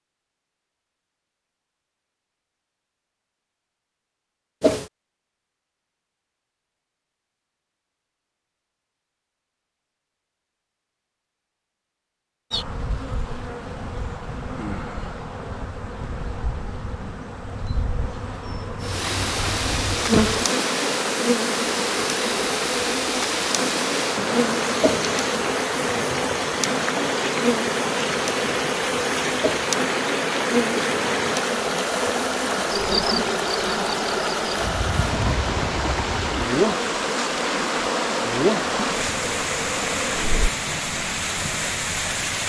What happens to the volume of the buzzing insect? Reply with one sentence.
The loudness of the buzzing insect goes up.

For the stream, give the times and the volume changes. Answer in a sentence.
You can hear the stream from 18.8 to 42.4 s, at a steady volume.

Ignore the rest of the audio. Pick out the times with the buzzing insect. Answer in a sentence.
The buzzing insect can be heard from 12.5 to 40.5 s.